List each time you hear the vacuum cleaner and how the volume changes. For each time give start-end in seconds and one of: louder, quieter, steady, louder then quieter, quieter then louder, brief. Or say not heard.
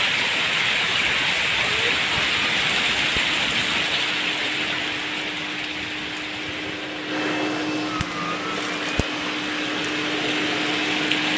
1.9-11.3 louder.